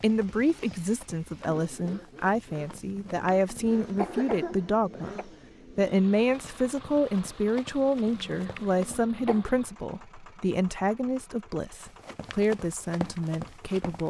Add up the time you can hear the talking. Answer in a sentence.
You can hear the talking for 14 seconds altogether.